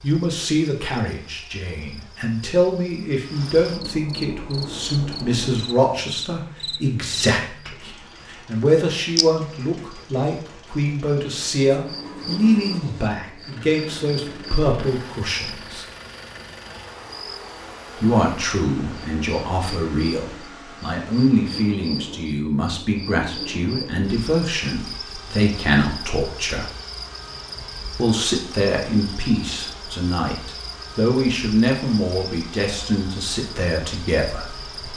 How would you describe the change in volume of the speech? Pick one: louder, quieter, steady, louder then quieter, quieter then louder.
steady.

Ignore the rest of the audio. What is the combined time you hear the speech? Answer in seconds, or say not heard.
31 s.